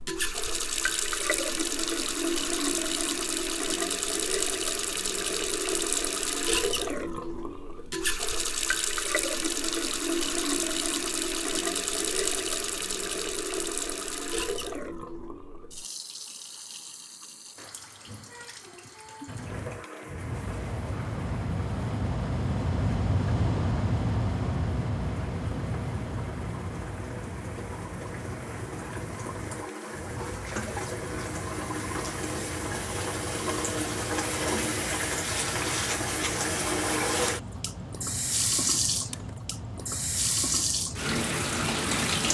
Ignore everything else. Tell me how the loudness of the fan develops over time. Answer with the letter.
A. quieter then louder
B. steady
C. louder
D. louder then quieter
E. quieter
E.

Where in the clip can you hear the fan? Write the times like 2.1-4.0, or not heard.
19.2-42.2.